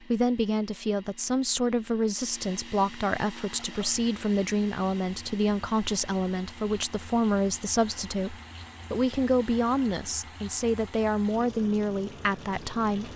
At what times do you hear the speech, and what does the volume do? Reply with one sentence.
The speech can be heard from 0.1 to 13.1 s, at a steady volume.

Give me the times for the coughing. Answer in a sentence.
The coughing can't be heard in this clip.